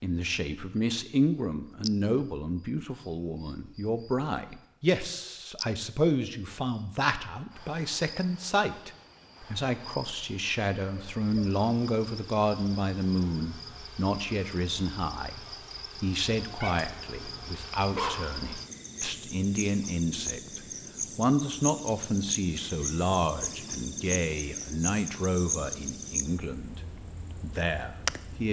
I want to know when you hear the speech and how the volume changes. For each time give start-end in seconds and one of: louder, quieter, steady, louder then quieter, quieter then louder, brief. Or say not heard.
0.0-28.4 steady.